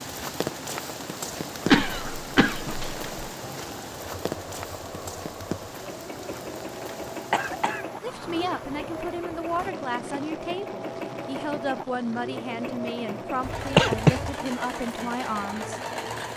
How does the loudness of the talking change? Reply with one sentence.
The loudness of the talking stays about the same.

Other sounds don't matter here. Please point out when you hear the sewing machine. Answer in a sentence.
You can hear the sewing machine from 0.0 to 16.3 s.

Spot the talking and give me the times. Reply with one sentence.
You can hear the talking from 8.0 to 15.8 s.